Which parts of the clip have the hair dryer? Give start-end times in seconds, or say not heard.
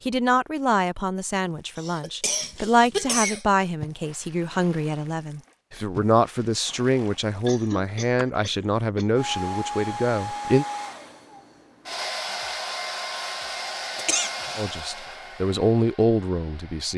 9.2-16.9.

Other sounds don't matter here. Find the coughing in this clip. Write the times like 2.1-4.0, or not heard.
1.8-3.4, 7.5-9.1, 13.9-14.6.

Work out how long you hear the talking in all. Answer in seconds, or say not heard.
13 s.